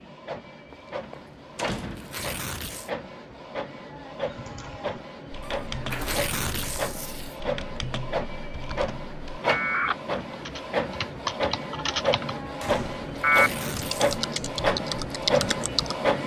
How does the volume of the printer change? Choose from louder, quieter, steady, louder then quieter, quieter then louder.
louder.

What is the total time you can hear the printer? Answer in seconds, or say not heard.
16 s.